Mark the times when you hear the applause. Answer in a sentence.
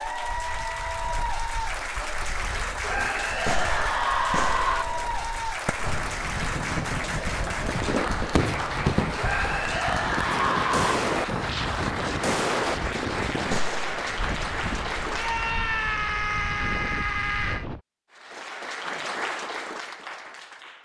The applause can be heard from 0.0 to 15.6 s and from 18.1 to 20.8 s.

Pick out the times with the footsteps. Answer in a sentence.
You can't hear the footsteps here.